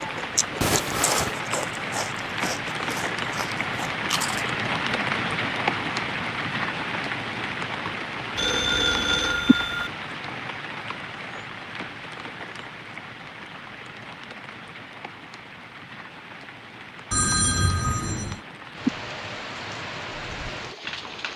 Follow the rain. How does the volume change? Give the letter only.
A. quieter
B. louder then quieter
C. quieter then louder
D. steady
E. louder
C.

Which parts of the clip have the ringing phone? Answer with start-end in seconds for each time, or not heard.
0.6-1.4, 8.3-9.9, 17.1-18.4.